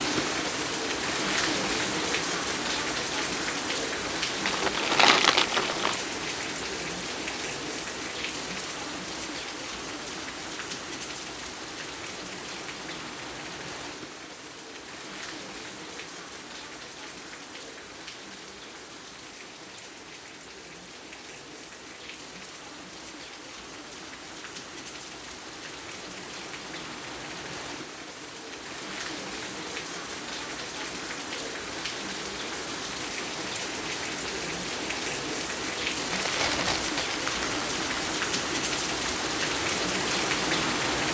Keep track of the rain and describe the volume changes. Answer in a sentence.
The volume of the rain goes down, then up.